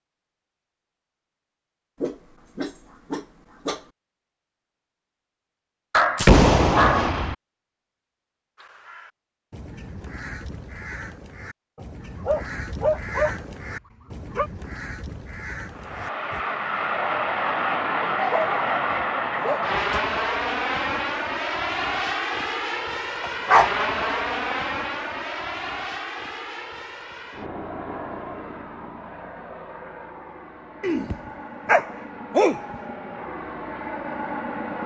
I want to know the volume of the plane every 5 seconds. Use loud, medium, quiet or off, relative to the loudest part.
off, off, off, loud, loud, medium, medium.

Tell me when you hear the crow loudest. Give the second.
13 s.